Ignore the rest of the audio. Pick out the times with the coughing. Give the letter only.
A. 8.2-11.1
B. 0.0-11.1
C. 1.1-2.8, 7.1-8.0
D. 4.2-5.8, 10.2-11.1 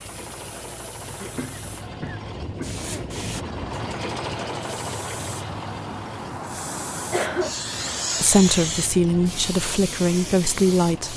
C.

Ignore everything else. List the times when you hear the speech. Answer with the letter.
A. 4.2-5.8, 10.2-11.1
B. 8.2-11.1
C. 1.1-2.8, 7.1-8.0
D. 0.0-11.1
B.